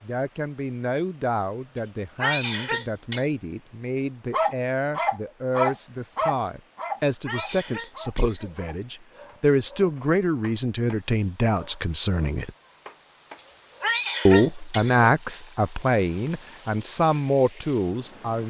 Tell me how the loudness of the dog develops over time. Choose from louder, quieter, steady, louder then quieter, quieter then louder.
quieter.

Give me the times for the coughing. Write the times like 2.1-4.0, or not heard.
2.1-3.2, 7.2-8.6, 13.8-15.1.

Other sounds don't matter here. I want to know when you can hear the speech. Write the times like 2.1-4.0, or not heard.
0.0-12.5, 14.2-18.4.